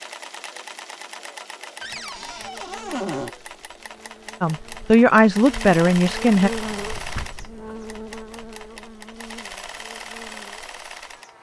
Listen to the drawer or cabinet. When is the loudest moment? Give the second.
3 s.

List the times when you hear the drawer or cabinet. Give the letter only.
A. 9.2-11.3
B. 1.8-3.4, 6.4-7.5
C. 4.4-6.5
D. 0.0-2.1
B.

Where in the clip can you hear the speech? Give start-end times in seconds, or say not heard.
4.4-6.5.